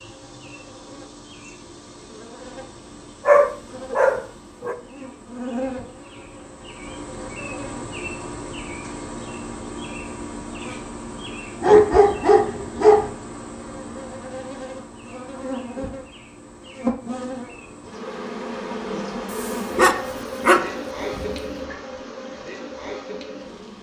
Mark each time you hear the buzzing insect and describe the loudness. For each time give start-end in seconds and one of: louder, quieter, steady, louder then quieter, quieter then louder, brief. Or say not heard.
0.0-23.7 louder.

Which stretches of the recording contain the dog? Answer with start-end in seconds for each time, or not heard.
3.2-4.8, 11.6-13.1, 19.3-21.4.